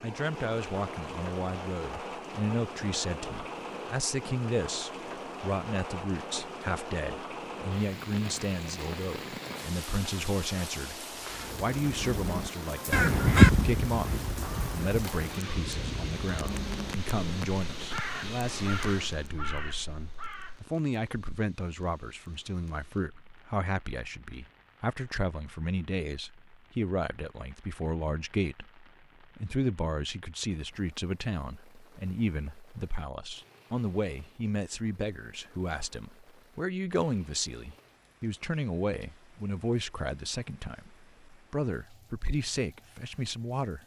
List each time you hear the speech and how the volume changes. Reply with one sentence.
The speech can be heard from 0.0 to 43.8 s, at a steady volume.